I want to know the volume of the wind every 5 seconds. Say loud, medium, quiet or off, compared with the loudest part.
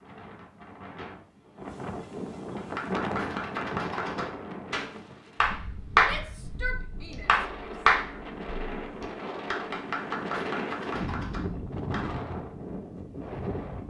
loud, medium, loud.